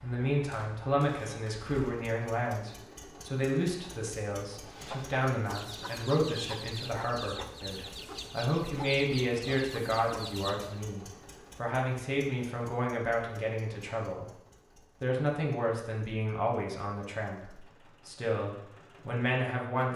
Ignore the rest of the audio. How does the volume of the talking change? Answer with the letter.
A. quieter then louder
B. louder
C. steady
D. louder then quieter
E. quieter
C.